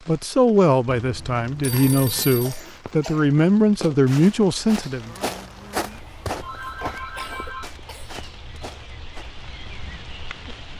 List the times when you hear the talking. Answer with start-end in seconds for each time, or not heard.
0.1-5.2.